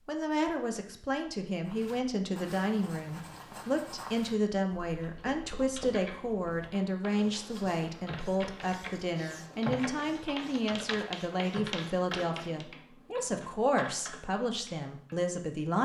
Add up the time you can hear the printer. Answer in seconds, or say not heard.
not heard.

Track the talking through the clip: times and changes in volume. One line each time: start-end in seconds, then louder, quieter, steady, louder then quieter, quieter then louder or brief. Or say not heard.
0.1-15.7 steady.